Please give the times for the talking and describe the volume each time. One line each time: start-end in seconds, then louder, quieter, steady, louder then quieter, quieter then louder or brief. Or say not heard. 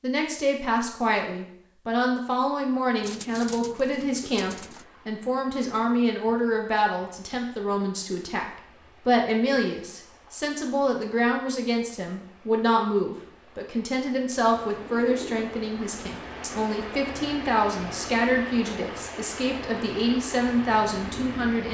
0.0-21.7 steady.